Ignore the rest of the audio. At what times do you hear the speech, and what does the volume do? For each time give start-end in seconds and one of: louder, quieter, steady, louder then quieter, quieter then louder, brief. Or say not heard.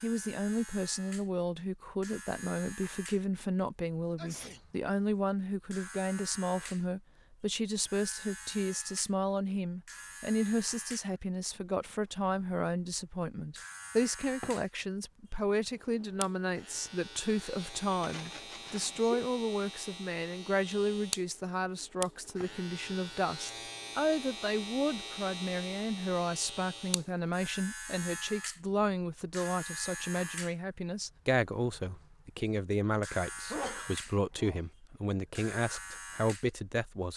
0.0-37.1 steady.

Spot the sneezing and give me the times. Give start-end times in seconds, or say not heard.
4.2-4.6, 18.0-19.2, 33.5-34.6.